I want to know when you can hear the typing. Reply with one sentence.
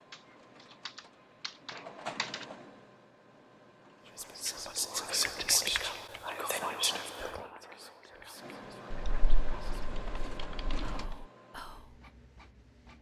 You can hear the typing from 0.8 to 2.5 s, from 5.1 to 6.3 s and from 8.9 to 11.2 s.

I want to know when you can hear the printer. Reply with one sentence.
You can hear the printer from 0.0 to 4.7 s and from 8.3 to 12.9 s.